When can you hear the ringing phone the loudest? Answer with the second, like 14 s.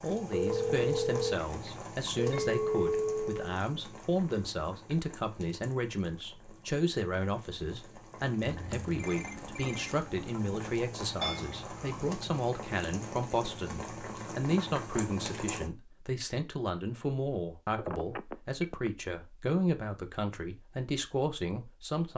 1 s.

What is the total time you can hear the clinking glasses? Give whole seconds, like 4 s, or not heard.
2 s.